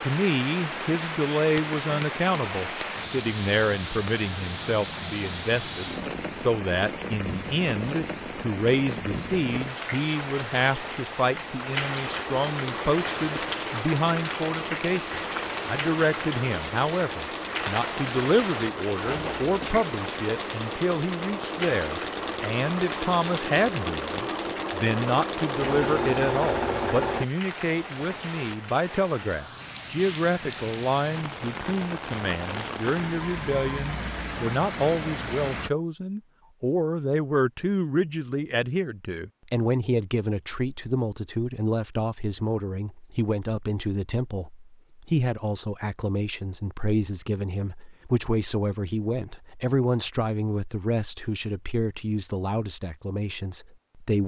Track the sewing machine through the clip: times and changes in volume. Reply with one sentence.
You can hear the sewing machine from 12.1 to 27.2 s, getting louder.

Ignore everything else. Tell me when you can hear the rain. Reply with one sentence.
You can hear the rain from 0.0 to 35.7 s.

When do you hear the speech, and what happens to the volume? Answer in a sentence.
You can hear the speech from 0.0 to 54.2 s, at a steady volume.